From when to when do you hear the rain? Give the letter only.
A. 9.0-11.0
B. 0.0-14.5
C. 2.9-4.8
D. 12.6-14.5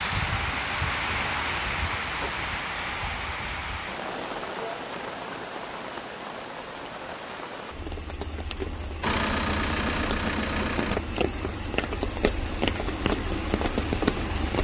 B.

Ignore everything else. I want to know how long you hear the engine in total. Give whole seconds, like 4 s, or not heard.
2 s.